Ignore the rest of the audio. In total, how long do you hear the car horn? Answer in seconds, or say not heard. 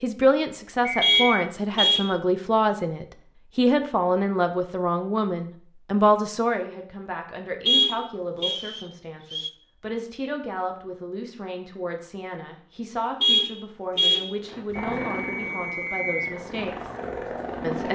3 s.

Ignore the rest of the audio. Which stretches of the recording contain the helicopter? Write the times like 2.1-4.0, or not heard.
14.4-17.9.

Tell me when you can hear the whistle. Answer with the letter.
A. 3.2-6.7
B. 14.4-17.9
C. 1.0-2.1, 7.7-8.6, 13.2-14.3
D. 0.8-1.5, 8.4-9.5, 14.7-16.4
D.